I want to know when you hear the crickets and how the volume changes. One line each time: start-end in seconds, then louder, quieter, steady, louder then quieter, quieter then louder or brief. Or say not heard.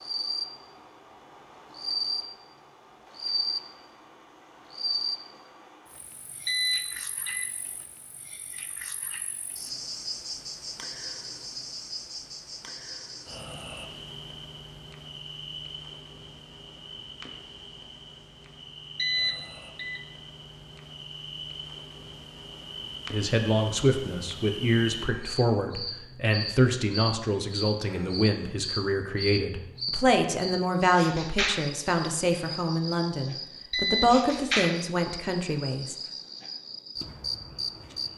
0.0-38.1 quieter then louder.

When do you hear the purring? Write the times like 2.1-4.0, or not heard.
not heard.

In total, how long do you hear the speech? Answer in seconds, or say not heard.
13 s.